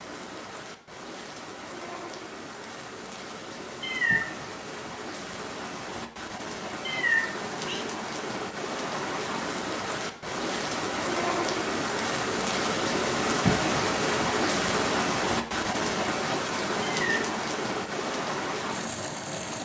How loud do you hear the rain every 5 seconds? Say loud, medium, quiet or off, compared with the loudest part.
quiet, medium, loud, loud.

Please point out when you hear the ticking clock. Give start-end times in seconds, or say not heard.
not heard.